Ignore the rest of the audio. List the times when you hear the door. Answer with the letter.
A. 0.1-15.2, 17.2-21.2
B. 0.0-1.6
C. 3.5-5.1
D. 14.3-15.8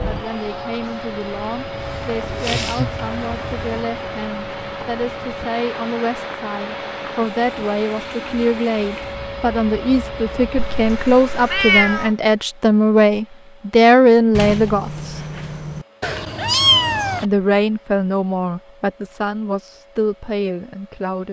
D.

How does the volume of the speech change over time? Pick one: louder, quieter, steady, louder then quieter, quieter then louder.
louder then quieter.